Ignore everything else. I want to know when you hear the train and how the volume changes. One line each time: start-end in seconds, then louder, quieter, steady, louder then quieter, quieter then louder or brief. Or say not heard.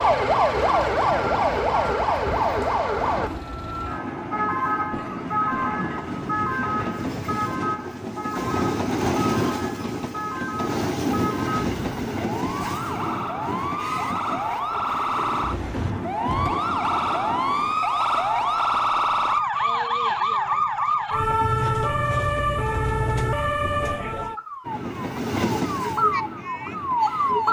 0.0-17.8 louder then quieter
24.6-27.4 brief.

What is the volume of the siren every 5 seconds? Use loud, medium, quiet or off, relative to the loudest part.
loud, medium, medium, loud, loud, loud.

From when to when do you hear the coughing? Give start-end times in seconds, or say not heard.
4.9-6.0, 15.7-16.6.